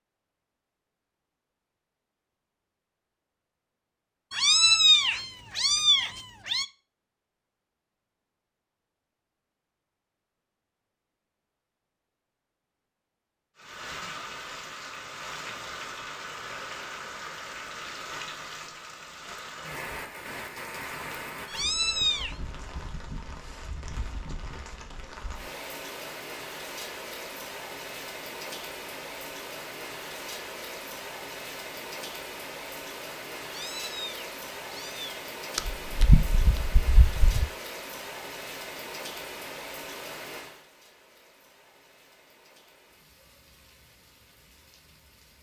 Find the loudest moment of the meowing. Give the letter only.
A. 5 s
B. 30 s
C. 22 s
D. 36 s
A.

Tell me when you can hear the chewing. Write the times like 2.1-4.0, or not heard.
35.5-37.5.